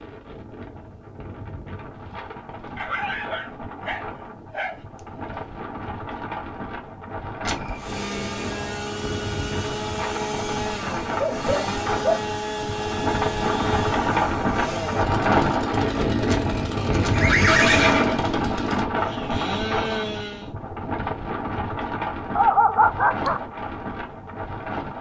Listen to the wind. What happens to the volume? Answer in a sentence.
The volume of the wind goes up, then down.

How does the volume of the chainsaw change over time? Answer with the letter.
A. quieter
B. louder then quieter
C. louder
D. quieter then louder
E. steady
E.